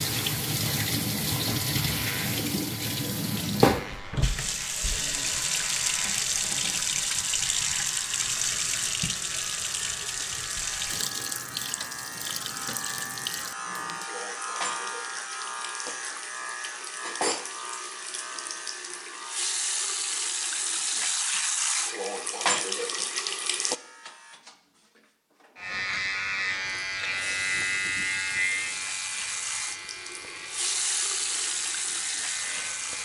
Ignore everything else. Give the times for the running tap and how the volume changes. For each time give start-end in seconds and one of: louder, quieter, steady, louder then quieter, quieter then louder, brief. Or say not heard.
0.0-23.8 quieter then louder
26.7-33.0 louder.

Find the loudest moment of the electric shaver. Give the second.
28 s.